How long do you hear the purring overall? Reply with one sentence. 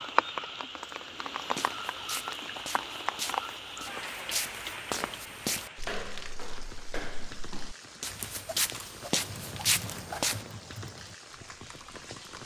The purring can't be heard in this clip.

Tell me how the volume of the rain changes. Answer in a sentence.
The loudness of the rain goes down.